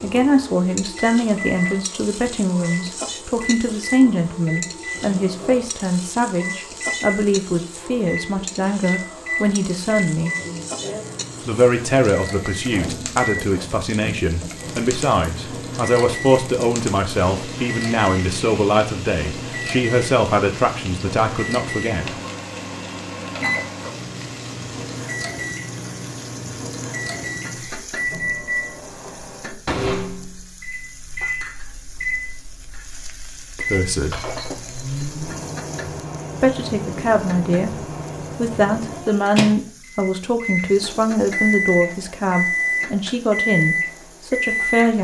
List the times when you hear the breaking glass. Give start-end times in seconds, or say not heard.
34.1-35.0.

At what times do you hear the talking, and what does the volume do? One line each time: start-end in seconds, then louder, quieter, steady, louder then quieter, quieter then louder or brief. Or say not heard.
0.0-10.3 steady
11.4-22.2 steady
33.5-34.2 brief
36.4-45.0 steady.